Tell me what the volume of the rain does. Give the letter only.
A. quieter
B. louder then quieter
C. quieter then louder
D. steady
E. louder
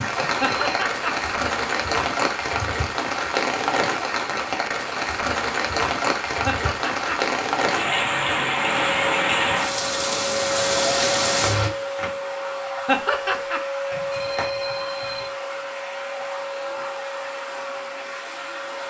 D.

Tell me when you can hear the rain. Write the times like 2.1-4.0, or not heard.
0.0-11.7.